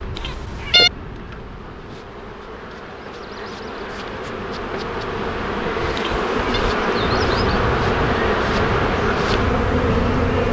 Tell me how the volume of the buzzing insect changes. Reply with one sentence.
The volume of the buzzing insect goes up.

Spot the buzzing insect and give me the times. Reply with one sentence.
The buzzing insect can be heard from 0.0 to 10.4 s.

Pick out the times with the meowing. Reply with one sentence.
You can hear the meowing from 0.1 to 0.9 s and from 6.0 to 6.6 s.